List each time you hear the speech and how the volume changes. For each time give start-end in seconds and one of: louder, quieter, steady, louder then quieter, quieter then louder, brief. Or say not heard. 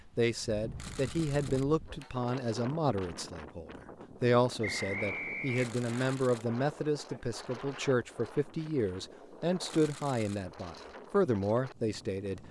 0.1-12.4 steady.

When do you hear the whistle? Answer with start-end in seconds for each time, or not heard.
4.6-6.2.